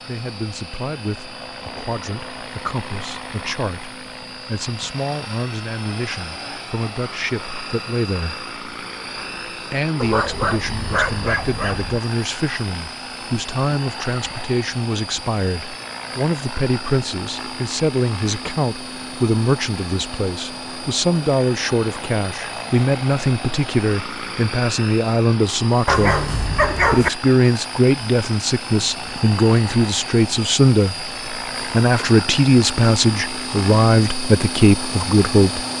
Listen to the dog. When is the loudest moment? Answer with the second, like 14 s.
27 s.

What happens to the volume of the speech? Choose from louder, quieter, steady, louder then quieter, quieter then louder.
louder.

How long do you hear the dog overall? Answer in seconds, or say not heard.
3 s.